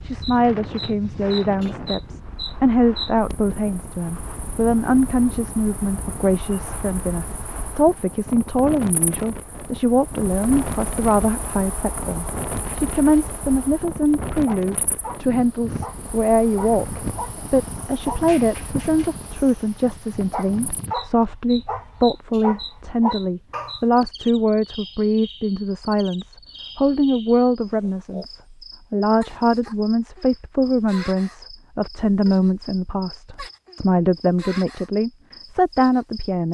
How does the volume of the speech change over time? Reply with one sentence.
The loudness of the speech stays about the same.